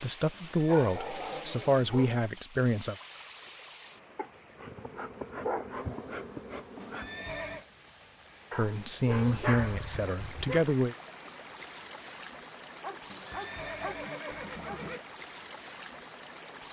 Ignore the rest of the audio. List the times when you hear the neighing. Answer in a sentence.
You can hear the neighing from 0.3 to 2.1 s, from 6.8 to 7.7 s and from 13.1 to 15.0 s.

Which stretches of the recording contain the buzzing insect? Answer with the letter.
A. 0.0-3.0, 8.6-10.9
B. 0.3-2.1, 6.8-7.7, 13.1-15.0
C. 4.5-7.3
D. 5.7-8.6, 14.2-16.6
C.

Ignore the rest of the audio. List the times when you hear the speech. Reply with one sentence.
The speech can be heard from 0.0 to 3.0 s and from 8.6 to 10.9 s.